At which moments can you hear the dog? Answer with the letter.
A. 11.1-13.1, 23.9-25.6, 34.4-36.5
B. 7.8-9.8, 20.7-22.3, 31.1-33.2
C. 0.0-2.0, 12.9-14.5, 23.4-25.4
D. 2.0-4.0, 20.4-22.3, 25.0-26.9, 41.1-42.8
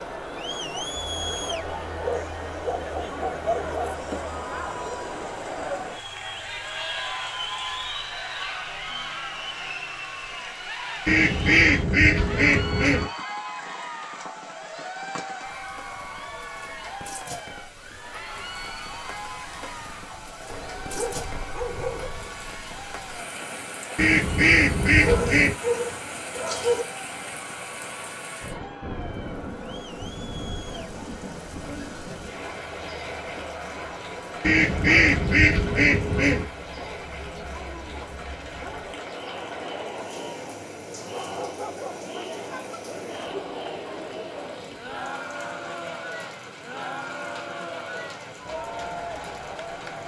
D.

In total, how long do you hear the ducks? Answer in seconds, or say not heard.
6 s.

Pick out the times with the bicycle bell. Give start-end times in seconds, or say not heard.
not heard.